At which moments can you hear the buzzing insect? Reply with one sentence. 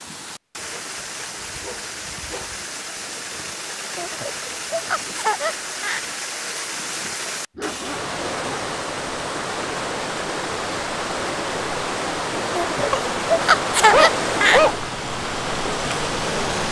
You can't hear the buzzing insect here.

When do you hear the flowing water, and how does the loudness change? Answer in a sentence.
The flowing water can be heard from 0.0 to 16.6 s, getting louder.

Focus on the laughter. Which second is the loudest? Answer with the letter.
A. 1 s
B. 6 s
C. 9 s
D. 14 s
D.